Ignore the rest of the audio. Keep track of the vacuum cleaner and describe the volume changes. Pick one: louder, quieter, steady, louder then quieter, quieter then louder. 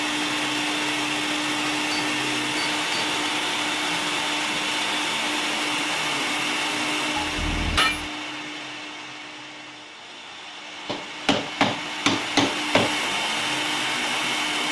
quieter then louder.